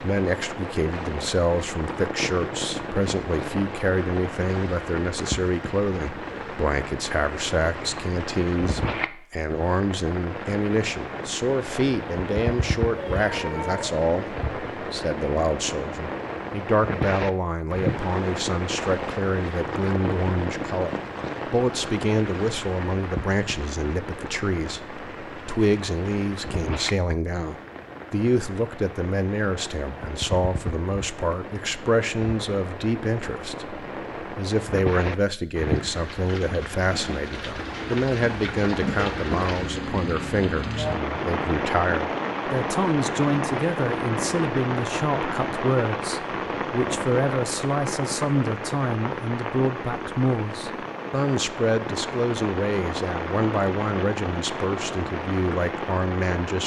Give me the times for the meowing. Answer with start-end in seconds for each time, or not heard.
12.9-14.0.